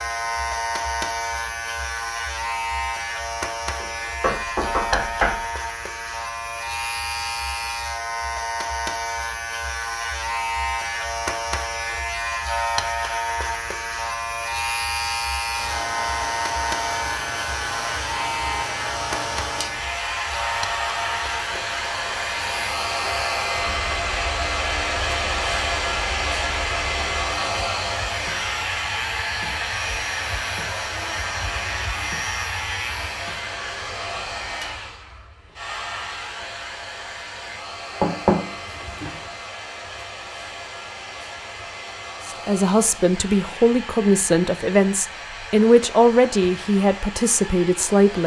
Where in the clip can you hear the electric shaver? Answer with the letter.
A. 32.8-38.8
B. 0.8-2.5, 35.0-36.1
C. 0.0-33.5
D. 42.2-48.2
C.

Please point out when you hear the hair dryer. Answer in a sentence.
The hair dryer can be heard from 15.6 to 48.2 s.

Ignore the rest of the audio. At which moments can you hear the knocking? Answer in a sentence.
You can hear the knocking from 3.8 to 5.5 s and from 38.0 to 39.1 s.